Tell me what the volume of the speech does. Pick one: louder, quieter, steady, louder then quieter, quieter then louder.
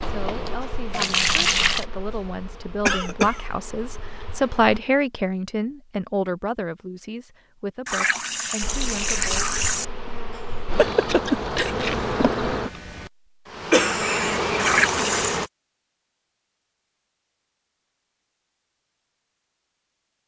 louder then quieter.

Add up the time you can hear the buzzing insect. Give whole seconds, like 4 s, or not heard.
12 s.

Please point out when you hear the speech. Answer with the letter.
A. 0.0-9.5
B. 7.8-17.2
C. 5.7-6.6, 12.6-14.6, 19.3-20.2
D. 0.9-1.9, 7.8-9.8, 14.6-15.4
A.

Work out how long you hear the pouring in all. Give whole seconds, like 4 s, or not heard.
4 s.